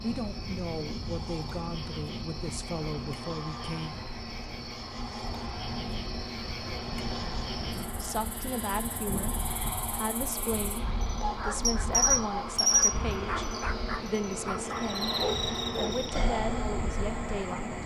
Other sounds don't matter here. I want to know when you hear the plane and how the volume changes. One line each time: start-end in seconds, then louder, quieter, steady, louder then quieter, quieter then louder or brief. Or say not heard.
0.0-17.8 louder.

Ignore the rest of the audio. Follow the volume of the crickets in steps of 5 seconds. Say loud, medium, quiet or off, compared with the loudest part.
quiet, quiet, loud, medium.